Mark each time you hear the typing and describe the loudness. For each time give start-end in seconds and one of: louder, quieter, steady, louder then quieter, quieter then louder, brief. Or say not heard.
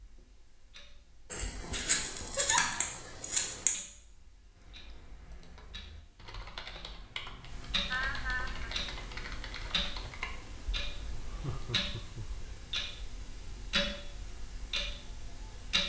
4.5-11.8 louder.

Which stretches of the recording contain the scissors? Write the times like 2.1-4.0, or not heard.
1.3-3.7.